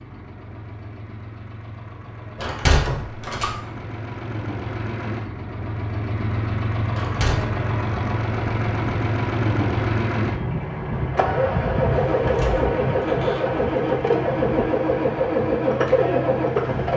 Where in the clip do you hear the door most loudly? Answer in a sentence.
The volume of the door peaks at 3 seconds.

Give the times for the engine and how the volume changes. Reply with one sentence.
You can hear the engine from 0.0 to 16.9 s, getting louder.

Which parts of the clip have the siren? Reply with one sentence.
You can't hear the siren here.